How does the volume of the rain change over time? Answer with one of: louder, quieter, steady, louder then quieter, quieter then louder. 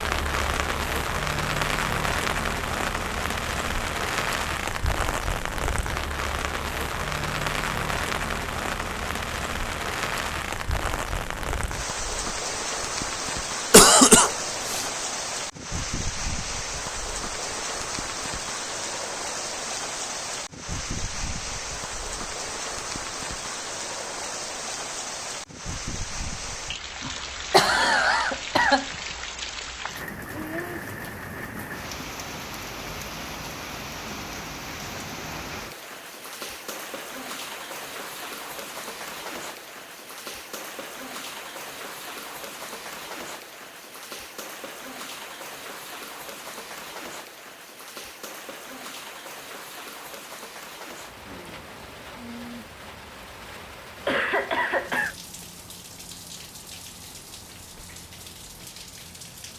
quieter.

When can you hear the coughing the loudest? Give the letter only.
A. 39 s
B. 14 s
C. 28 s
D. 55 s
B.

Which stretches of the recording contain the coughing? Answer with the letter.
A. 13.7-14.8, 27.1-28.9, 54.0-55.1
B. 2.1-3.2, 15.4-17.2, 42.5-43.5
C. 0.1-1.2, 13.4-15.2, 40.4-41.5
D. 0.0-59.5
A.